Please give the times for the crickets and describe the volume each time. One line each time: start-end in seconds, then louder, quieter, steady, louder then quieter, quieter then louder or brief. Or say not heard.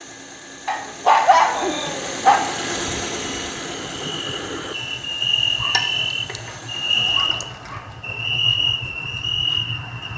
1.6-10.1 louder.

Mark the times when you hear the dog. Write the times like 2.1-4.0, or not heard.
0.7-2.5, 5.6-6.5, 7.2-7.8.